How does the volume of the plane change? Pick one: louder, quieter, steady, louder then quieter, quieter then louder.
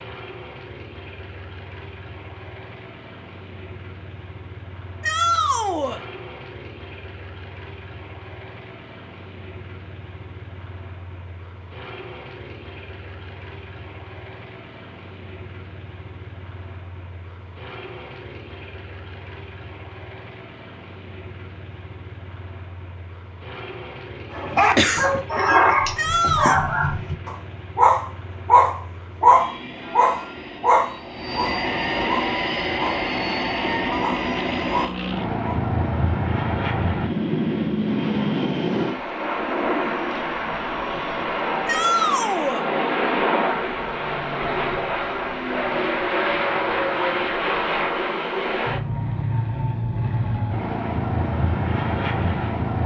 louder.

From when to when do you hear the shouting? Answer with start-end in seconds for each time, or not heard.
5.0-6.0, 25.9-26.6, 41.6-42.6.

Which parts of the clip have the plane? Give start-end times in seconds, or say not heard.
0.0-52.8.